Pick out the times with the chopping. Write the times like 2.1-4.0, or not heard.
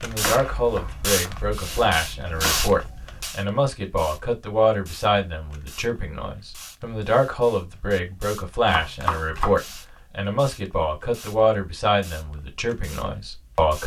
0.1-2.8, 8.7-9.6.